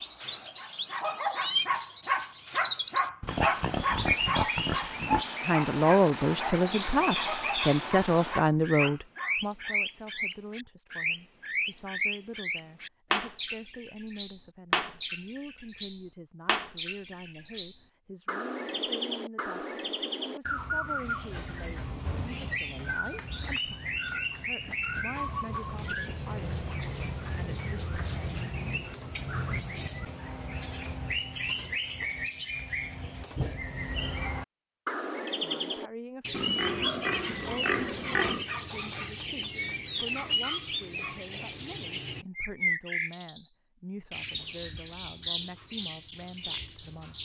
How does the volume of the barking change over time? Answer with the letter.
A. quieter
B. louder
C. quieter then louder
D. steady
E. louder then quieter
A.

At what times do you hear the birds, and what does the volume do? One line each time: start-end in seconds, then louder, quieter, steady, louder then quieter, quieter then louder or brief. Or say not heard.
0.0-47.2 steady.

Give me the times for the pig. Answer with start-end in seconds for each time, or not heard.
3.2-5.2, 36.3-38.5.